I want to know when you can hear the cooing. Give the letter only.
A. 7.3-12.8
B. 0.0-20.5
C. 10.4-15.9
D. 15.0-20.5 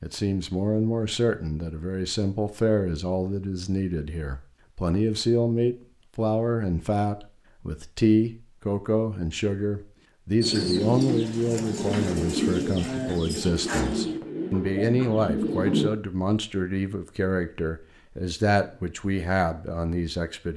C.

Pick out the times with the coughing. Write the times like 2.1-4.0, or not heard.
not heard.